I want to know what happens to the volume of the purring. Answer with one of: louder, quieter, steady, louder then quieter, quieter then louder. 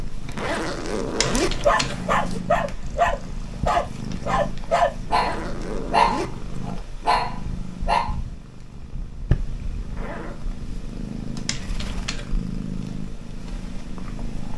steady.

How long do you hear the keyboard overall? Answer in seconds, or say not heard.
2 s.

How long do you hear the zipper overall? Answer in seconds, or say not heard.
4 s.